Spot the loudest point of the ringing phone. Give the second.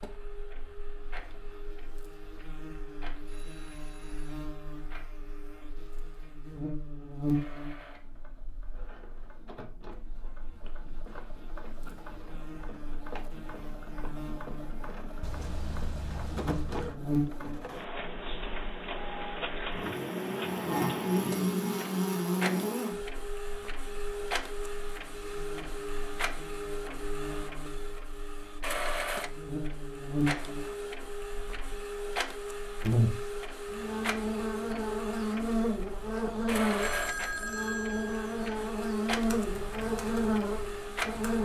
37 s.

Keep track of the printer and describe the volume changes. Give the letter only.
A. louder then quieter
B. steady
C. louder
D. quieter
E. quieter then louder
C.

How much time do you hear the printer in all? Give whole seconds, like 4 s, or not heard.
41 s.